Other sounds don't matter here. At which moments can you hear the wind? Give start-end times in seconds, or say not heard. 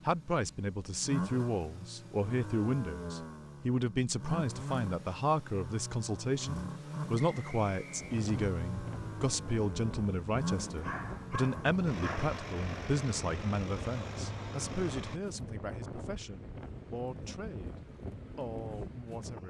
7.9-19.4.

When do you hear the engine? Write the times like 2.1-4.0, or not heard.
0.0-15.2.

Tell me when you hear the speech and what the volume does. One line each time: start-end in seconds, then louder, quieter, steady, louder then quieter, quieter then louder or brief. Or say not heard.
0.1-17.8 quieter
18.4-19.4 brief.